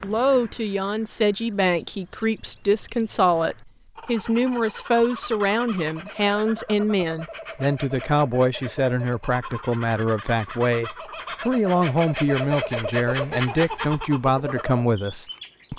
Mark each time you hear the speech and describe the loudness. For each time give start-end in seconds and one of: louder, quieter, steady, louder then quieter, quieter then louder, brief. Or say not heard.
0.0-15.7 steady.